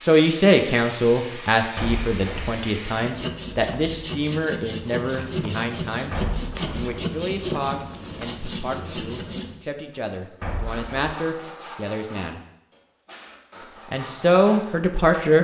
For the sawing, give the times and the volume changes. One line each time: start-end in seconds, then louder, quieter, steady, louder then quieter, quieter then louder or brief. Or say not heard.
2.9-14.8 quieter.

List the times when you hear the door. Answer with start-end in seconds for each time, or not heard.
1.8-2.6, 6.1-7.0, 10.4-11.1.